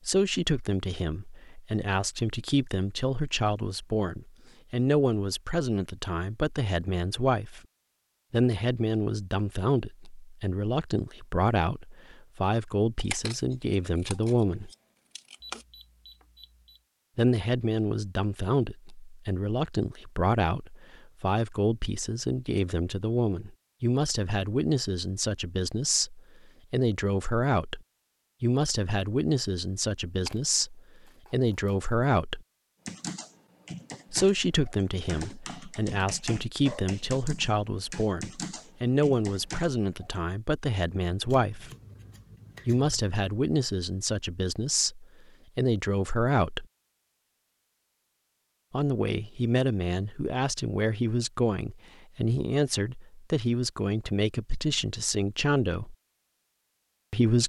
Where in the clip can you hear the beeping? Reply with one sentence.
You can hear the beeping from 15.4 to 16.8 s.